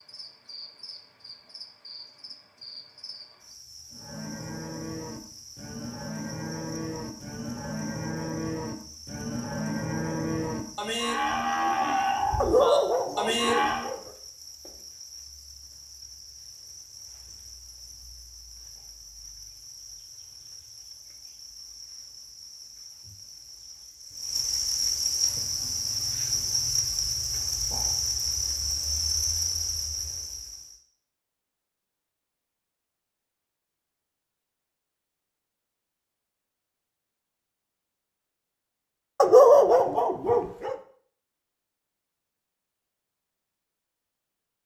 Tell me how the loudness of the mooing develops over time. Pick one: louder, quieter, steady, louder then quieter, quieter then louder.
louder.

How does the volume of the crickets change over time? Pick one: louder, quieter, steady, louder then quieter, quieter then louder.
louder.